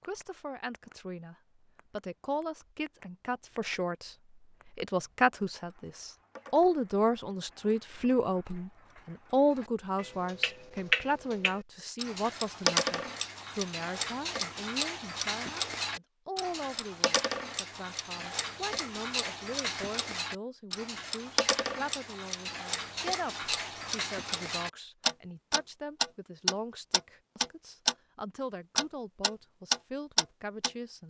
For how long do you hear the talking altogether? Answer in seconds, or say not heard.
31 s.